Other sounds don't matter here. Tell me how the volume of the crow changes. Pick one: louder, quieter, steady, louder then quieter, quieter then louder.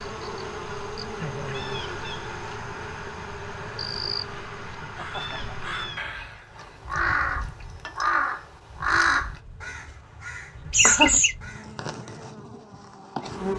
louder.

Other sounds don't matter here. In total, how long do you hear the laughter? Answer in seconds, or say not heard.
2 s.